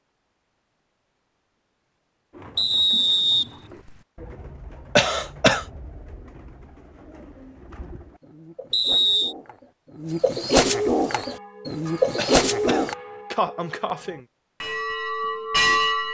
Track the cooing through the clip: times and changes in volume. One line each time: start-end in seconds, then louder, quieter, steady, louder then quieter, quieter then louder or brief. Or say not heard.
2.3-12.9 louder.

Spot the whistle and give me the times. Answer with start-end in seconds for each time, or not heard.
2.5-4.0, 8.7-9.3.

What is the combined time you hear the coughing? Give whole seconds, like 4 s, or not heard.
3 s.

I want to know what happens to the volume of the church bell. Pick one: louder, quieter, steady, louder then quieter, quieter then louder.
louder.